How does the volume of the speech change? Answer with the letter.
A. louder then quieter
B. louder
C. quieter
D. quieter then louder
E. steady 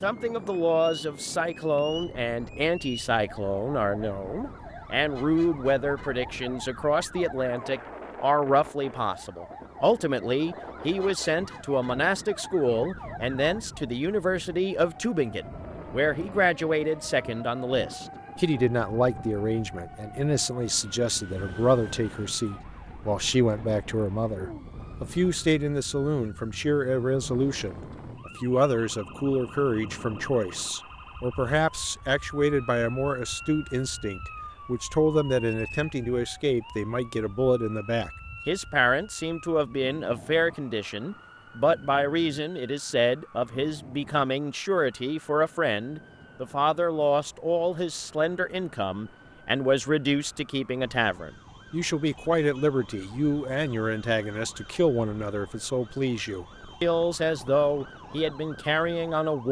E.